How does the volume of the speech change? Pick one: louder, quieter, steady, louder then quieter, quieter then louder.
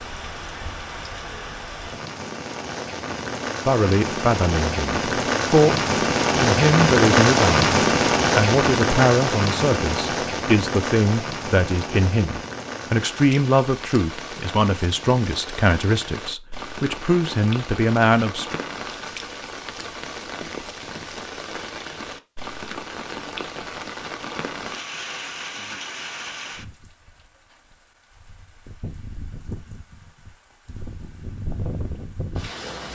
steady.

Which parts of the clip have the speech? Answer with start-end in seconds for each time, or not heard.
3.6-7.5, 8.3-18.6.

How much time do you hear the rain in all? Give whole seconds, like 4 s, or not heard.
33 s.